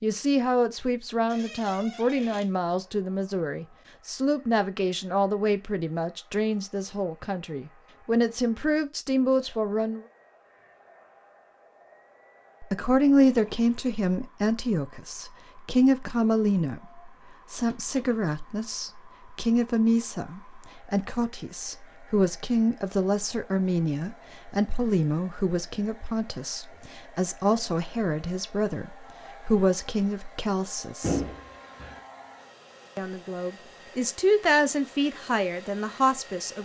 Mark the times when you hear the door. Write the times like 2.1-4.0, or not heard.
1.2-2.5, 17.6-18.2, 31.0-32.0.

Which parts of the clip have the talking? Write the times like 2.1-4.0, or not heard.
0.0-10.1, 12.6-31.2, 33.0-36.5.